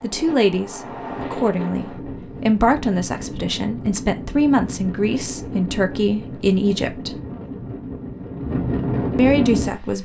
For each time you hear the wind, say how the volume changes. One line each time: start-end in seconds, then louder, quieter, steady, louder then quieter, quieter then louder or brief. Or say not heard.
0.0-10.0 louder.